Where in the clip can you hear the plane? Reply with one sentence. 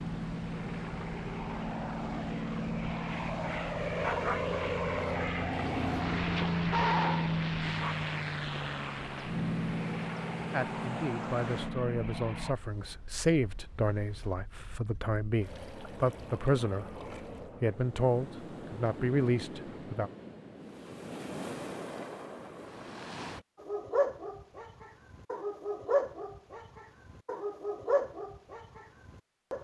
You can hear the plane from 0.0 to 12.6 s.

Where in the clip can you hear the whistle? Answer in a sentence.
The whistle can't be heard in this clip.